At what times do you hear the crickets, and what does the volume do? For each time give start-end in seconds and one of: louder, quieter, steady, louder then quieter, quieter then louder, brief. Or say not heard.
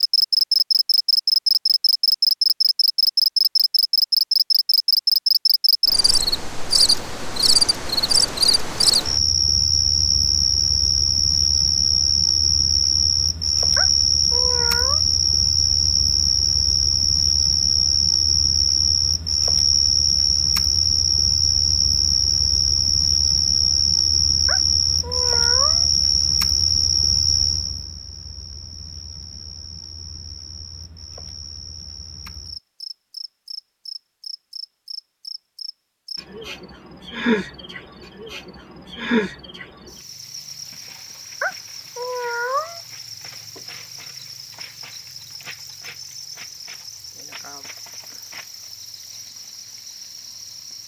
0.0-50.8 quieter.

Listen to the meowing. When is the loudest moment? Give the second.
42 s.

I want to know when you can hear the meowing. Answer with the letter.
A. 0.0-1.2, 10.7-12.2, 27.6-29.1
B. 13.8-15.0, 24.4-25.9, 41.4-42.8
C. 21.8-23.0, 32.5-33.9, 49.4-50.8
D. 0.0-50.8
B.